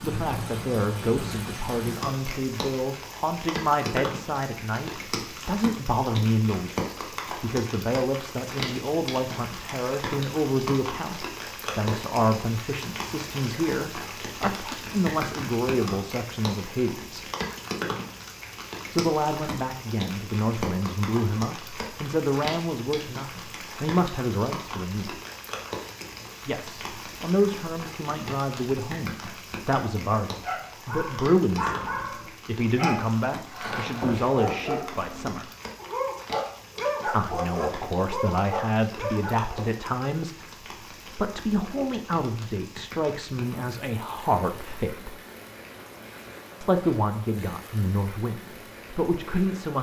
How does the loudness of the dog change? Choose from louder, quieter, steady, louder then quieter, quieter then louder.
steady.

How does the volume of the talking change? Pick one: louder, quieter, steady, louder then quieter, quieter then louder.
steady.